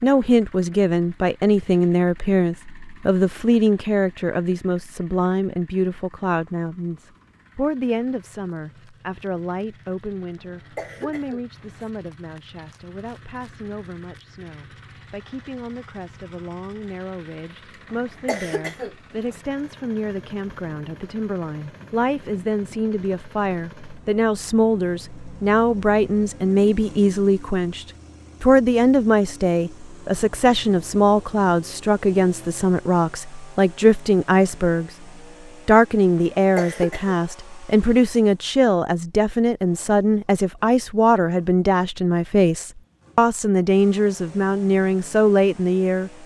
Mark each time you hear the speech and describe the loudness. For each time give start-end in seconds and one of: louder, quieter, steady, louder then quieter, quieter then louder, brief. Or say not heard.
0.0-35.0 quieter then louder
35.6-46.1 steady.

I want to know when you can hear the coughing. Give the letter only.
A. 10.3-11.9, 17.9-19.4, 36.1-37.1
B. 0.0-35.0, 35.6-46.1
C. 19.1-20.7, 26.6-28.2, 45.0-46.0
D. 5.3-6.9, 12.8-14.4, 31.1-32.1
A.